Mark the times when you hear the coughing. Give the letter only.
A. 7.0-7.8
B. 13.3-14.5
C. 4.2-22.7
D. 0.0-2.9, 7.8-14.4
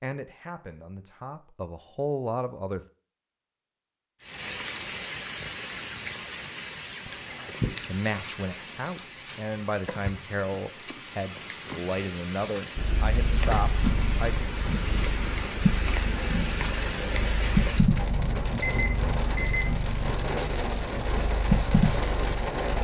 A.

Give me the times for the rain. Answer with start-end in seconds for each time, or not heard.
4.2-22.7.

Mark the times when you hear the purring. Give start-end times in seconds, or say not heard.
12.8-22.6.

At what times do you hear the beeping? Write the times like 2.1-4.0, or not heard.
18.6-19.8.